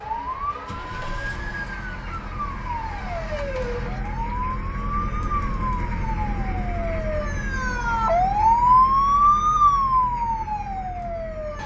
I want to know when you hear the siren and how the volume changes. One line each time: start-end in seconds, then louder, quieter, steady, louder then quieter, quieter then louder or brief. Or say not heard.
0.0-11.6 louder.